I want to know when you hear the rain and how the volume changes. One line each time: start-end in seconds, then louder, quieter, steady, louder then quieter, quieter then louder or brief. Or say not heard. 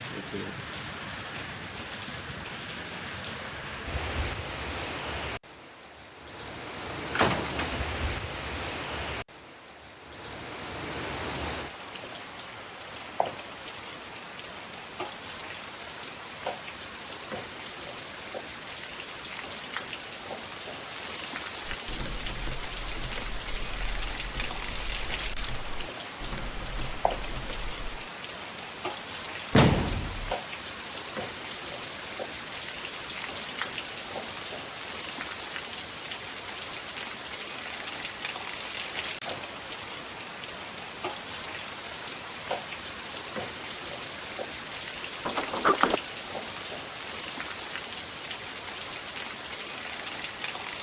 0.0-50.7 steady.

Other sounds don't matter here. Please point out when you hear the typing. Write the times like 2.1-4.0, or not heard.
21.6-28.1.